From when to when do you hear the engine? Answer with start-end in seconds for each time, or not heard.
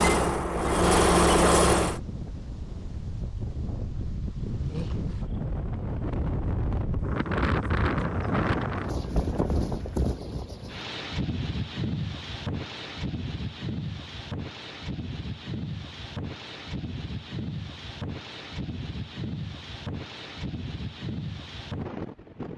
0.0-2.0.